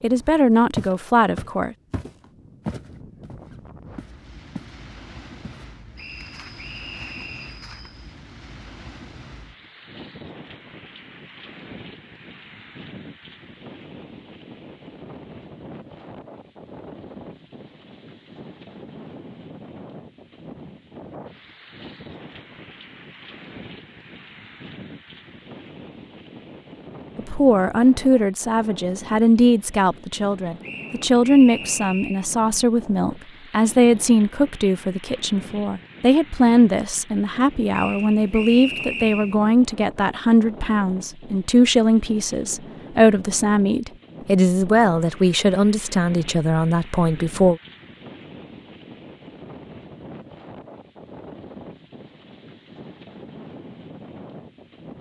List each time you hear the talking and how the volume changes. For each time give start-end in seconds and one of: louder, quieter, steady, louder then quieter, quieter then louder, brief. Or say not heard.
0.0-1.8 brief
27.1-47.6 steady.